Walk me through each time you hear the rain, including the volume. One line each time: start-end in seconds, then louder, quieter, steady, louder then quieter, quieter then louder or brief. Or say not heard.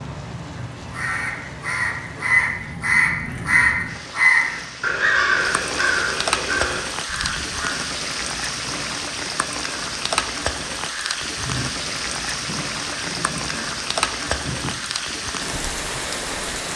0.0-16.7 louder.